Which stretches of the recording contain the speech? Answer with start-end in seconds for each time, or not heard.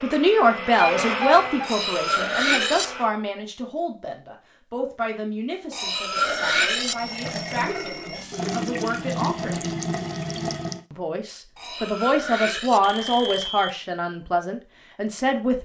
0.0-9.7, 10.9-15.6.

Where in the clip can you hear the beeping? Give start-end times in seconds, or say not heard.
0.8-1.6, 6.2-8.2, 12.8-13.7.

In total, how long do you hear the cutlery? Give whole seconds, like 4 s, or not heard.
4 s.